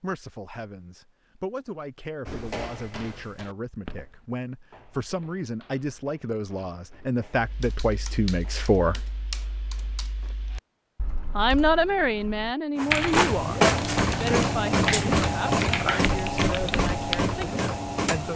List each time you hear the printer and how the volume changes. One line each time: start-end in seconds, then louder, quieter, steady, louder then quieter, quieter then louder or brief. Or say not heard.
12.8-18.3 quieter.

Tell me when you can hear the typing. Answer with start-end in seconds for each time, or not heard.
7.3-17.4.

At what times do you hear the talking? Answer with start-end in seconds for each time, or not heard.
0.0-9.1, 11.3-13.6, 14.2-18.3.